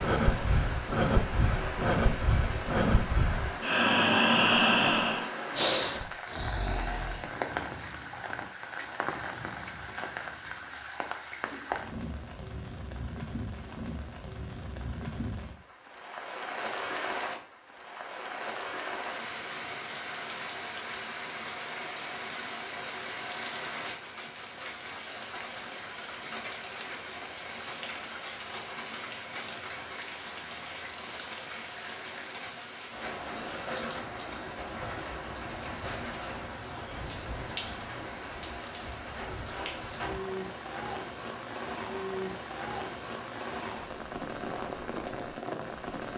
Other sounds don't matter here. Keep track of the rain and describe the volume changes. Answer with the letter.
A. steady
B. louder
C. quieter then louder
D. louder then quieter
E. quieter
A.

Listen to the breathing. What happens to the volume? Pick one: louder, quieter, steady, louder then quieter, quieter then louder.
louder then quieter.